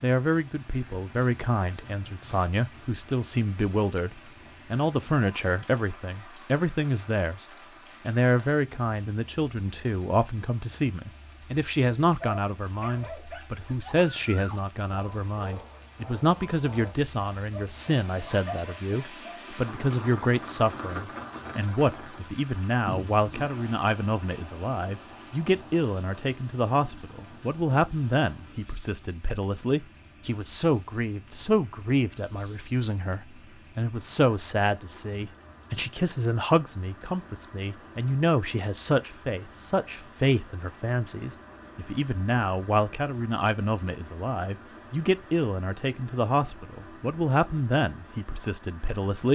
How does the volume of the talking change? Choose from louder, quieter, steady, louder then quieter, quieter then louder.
steady.